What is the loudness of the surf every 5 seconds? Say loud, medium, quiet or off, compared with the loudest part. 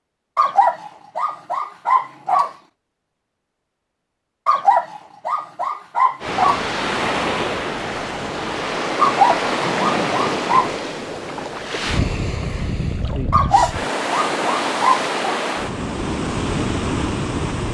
off, loud, loud, loud.